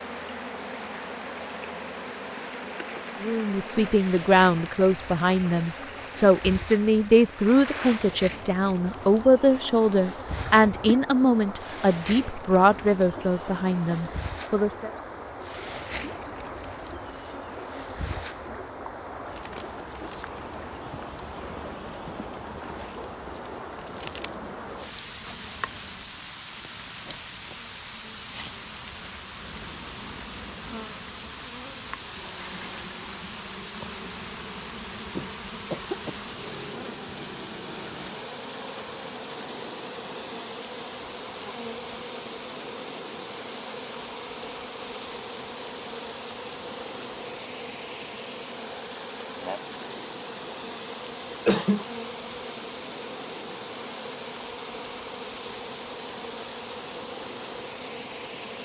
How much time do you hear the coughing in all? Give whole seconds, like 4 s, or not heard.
2 s.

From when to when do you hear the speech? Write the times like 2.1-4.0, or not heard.
3.2-14.9.